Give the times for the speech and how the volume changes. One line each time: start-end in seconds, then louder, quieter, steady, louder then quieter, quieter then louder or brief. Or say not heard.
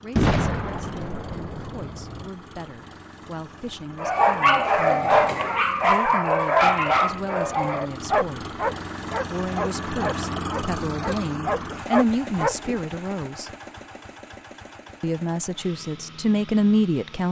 0.0-8.6 louder
9.3-13.5 louder then quieter
15.0-17.2 brief.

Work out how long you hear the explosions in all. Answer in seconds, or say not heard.
2 s.